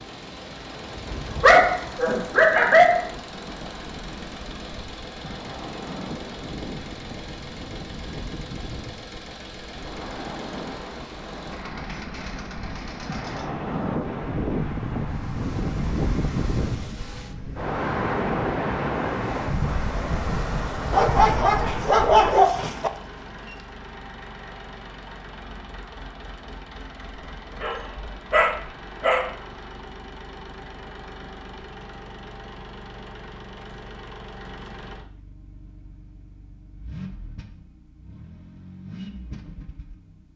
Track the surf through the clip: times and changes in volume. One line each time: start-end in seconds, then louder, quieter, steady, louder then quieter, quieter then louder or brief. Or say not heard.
0.0-22.4 louder.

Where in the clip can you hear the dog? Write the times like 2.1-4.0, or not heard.
1.4-3.1, 20.9-22.9, 27.6-29.3.